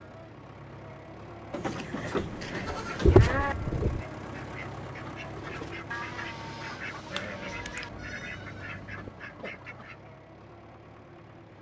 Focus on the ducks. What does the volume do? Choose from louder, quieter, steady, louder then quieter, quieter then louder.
steady.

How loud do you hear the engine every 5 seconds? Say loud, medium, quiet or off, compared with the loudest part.
loud, loud, medium.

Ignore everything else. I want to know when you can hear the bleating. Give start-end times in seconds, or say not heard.
1.5-3.5, 7.1-9.1.